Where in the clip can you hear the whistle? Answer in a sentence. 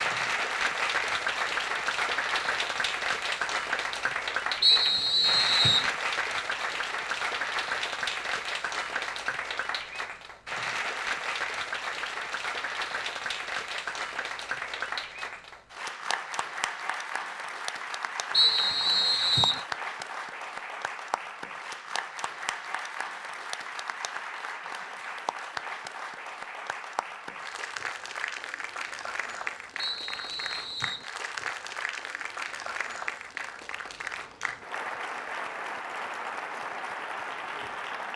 You can hear the whistle from 4.6 to 5.9 s, from 18.3 to 19.6 s and from 29.8 to 31.1 s.